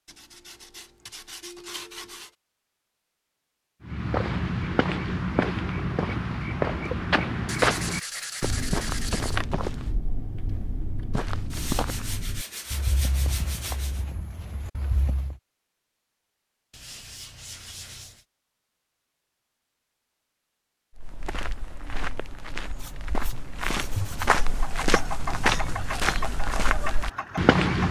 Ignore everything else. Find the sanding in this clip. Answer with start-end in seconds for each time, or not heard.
0.1-2.3, 7.5-9.4, 11.5-14.1, 16.7-18.2, 22.8-24.4.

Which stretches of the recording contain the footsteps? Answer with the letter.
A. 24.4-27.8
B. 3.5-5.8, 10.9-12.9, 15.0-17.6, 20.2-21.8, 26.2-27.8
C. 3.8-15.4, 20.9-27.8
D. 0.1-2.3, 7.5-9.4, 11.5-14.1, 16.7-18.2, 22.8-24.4
C.